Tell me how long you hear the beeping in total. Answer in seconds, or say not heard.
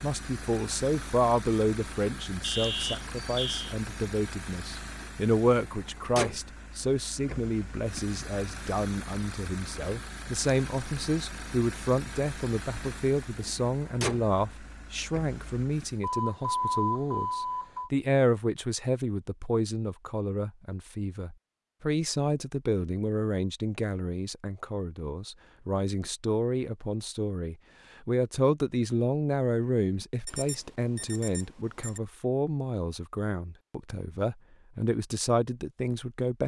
5 s.